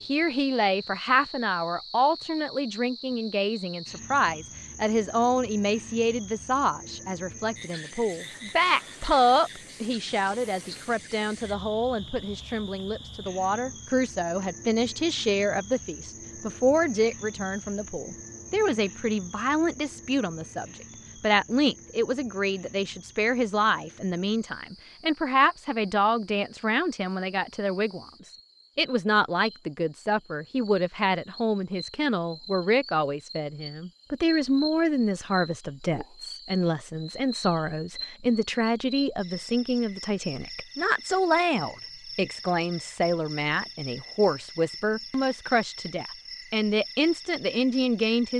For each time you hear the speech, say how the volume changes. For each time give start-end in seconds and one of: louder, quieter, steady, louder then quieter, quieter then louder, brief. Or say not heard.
0.0-48.3 steady.